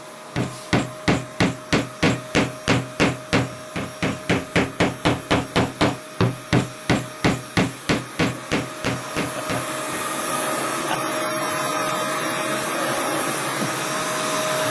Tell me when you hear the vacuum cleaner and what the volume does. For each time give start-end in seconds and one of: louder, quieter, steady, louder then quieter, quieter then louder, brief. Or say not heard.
0.0-14.6 louder.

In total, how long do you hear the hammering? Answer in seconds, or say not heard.
10 s.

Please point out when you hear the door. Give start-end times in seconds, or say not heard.
not heard.